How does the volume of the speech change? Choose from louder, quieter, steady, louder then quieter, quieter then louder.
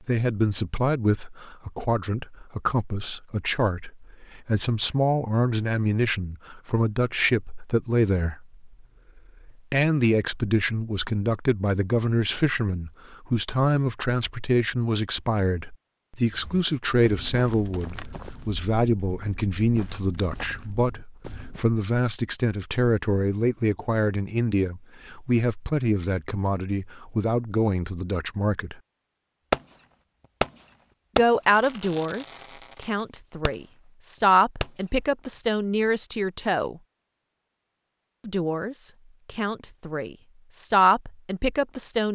steady.